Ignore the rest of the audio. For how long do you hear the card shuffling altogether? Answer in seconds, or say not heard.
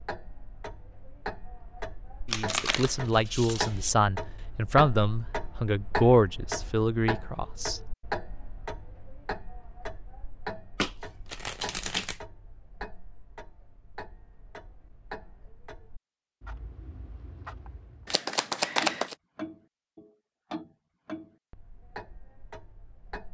4 s.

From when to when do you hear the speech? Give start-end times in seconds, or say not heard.
2.3-7.8.